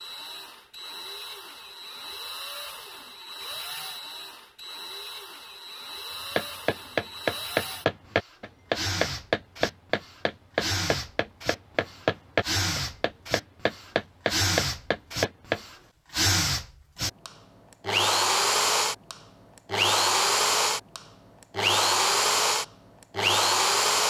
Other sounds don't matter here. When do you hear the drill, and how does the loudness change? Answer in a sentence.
The drill can be heard from 0.0 to 24.0 s, getting louder.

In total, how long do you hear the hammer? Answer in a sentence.
You can hear the hammer for 9 seconds altogether.